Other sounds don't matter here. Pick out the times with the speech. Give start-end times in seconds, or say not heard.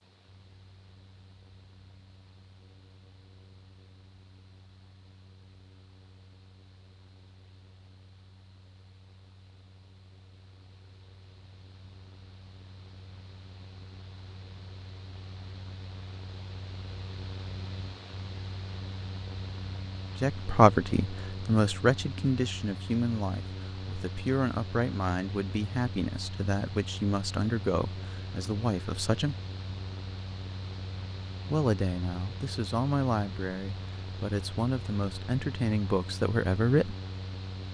20.2-29.4, 31.5-37.0.